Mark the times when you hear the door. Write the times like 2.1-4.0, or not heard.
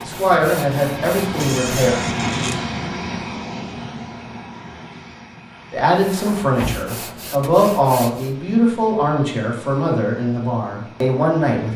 1.4-2.6, 6.4-6.9.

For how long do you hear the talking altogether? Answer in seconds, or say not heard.
8 s.